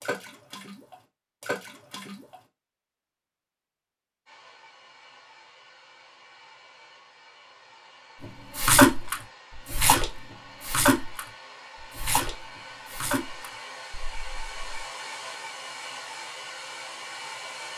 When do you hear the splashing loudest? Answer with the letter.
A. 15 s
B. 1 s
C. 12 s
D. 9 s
D.